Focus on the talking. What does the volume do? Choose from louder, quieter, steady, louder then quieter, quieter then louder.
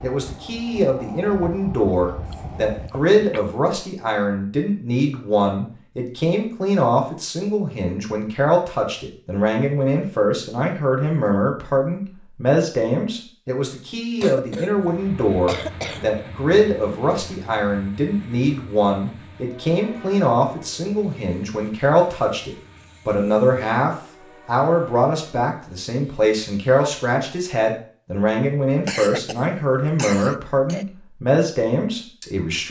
steady.